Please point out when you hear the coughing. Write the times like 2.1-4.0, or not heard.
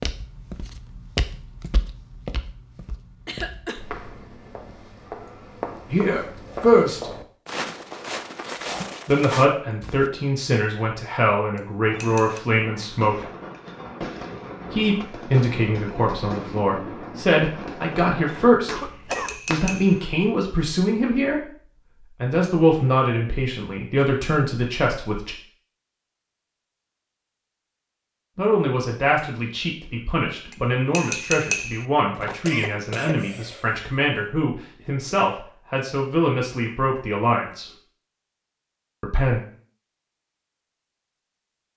3.2-3.8, 18.6-19.4, 32.1-34.2.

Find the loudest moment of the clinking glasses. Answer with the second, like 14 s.
31 s.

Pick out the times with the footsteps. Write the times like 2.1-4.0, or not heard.
0.0-10.1.